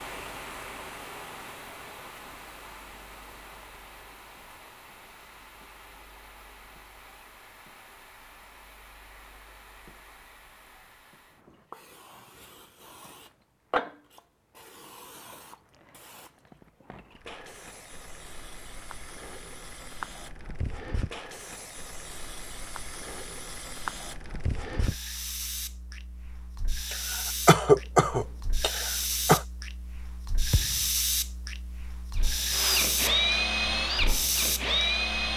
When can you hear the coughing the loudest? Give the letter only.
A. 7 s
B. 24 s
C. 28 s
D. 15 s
C.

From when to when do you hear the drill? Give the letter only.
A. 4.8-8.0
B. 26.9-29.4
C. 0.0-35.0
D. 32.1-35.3
D.